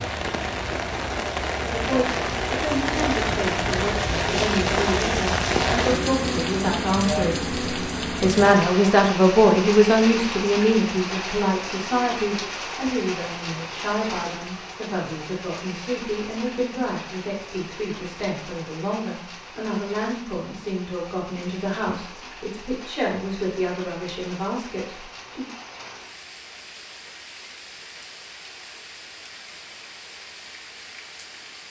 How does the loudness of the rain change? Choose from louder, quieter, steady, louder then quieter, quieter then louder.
quieter.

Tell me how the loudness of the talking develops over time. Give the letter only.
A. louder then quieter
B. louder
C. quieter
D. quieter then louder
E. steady
A.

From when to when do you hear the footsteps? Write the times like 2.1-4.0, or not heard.
not heard.